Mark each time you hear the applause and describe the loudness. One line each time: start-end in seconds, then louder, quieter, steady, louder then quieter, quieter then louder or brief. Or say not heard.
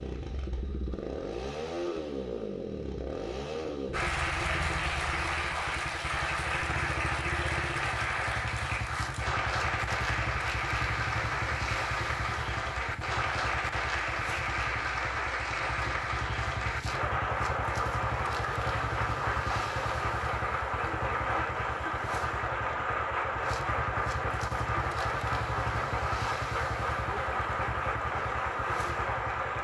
3.9-29.5 steady.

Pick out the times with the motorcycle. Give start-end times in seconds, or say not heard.
0.0-29.5.